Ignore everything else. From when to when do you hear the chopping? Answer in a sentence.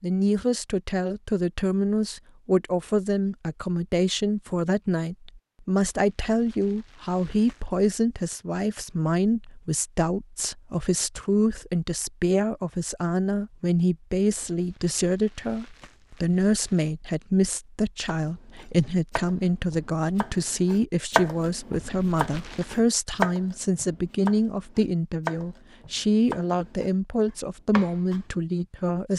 You can hear the chopping from 18.1 to 26.9 s and from 27.7 to 28.2 s.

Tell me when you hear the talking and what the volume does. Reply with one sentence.
The talking can be heard from 0.0 to 29.1 s, at a steady volume.